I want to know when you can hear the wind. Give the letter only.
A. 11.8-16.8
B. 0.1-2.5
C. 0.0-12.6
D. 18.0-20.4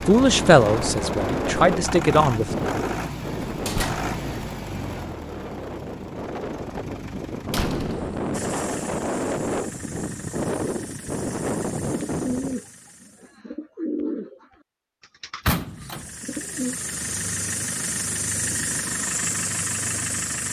C.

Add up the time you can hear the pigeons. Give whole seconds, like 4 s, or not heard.
5 s.